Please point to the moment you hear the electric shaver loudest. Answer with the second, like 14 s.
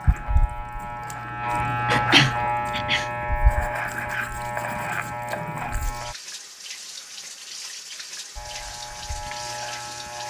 2 s.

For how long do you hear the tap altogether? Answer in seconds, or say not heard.
10 s.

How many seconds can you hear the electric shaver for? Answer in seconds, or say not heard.
8 s.